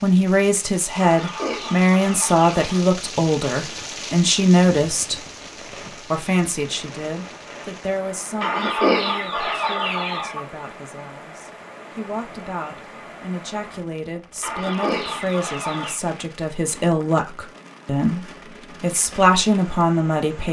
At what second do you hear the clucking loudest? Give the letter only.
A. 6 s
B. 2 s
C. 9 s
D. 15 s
C.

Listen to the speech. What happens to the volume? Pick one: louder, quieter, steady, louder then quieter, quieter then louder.
quieter then louder.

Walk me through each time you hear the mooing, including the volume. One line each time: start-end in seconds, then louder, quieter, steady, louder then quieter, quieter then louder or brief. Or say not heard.
not heard.